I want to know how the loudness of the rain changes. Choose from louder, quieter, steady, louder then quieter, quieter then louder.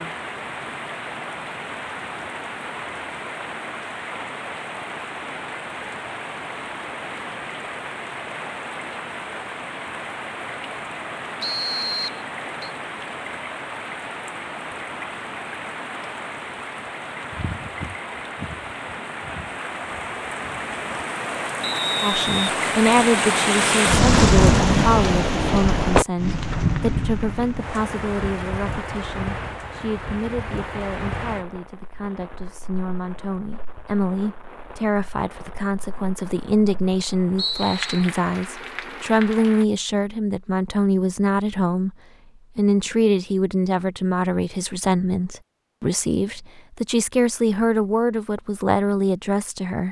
louder then quieter.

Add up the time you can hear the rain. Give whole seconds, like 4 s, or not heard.
40 s.